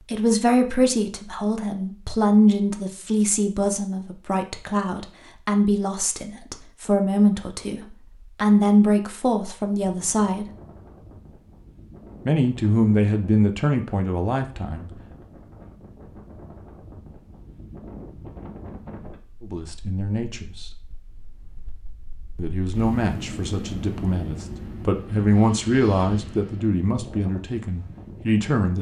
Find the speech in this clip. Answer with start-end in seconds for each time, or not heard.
0.0-10.4, 12.2-14.9, 19.4-20.8, 22.4-28.7.